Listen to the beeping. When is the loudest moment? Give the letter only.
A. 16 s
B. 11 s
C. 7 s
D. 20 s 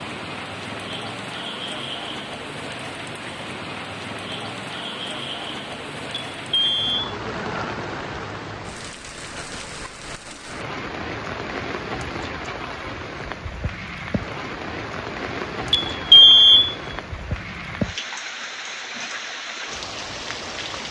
A.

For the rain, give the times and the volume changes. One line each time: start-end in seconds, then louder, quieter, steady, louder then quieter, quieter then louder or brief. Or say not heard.
0.0-20.8 steady.